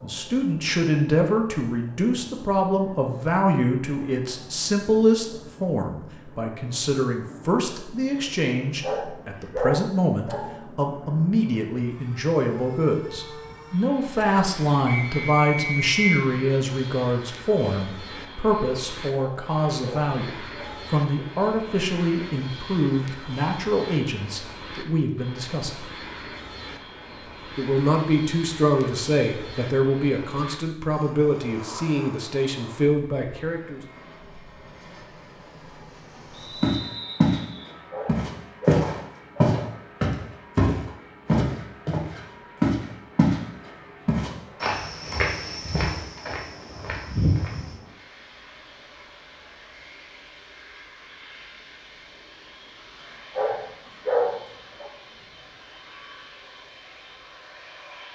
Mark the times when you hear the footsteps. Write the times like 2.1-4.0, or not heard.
36.6-37.4, 38.0-43.4, 44.0-47.6.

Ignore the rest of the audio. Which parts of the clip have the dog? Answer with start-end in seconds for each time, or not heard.
8.8-10.6, 19.4-20.9, 37.9-39.6, 53.4-54.9.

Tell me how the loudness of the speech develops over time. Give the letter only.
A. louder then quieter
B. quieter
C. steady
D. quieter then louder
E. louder
C.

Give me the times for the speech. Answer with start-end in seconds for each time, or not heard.
0.0-25.8, 27.6-33.8.